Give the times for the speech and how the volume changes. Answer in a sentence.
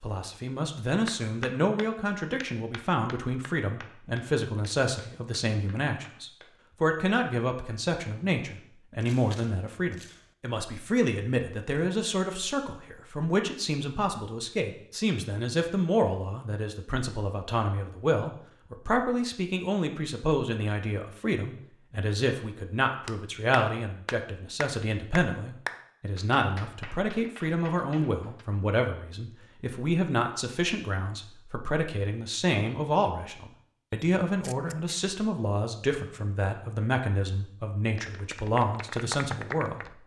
You can hear the speech from 0.0 to 40.0 s, at a steady volume.